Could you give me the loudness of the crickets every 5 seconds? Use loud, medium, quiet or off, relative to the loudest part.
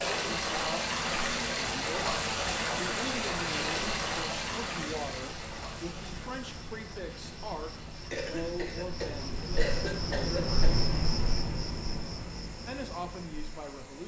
medium, medium, loud.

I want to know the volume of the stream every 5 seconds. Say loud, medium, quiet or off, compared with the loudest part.
loud, quiet, quiet.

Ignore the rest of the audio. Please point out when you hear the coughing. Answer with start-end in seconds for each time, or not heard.
8.1-10.8.